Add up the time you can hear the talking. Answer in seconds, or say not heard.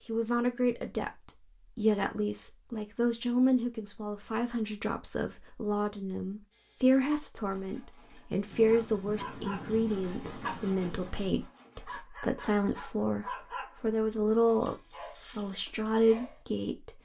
17 s.